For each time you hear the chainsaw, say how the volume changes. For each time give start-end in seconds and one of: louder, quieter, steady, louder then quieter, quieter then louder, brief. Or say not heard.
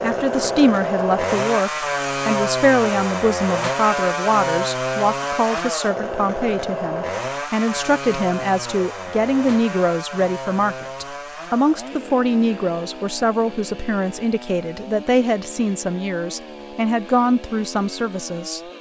0.0-18.7 quieter.